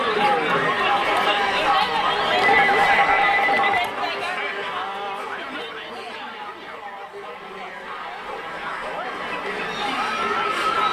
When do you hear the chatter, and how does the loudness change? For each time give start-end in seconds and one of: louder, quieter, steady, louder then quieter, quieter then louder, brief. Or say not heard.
0.0-10.8 quieter then louder.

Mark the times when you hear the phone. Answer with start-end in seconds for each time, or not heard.
2.4-3.9.